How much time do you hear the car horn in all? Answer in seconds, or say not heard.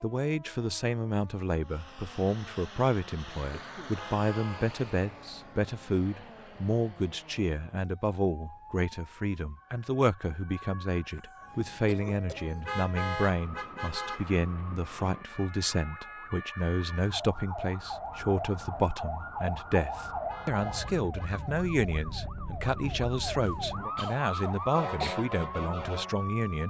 4 s.